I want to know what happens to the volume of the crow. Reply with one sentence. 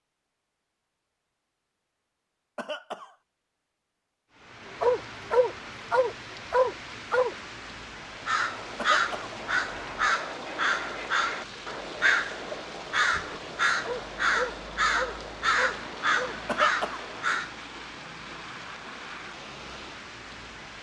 The loudness of the crow stays about the same.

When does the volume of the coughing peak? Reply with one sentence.
The loudest moment of the coughing is at 17 seconds.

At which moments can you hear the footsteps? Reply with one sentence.
You can't hear the footsteps here.